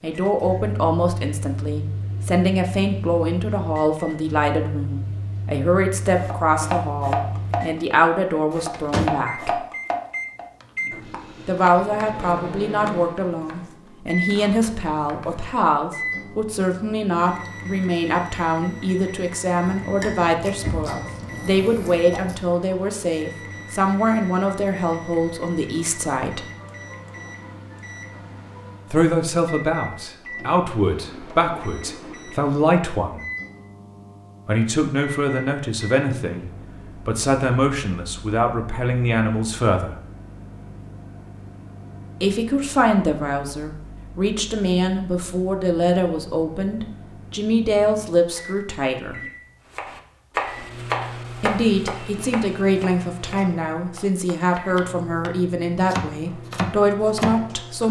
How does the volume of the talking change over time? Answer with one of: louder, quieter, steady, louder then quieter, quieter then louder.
steady.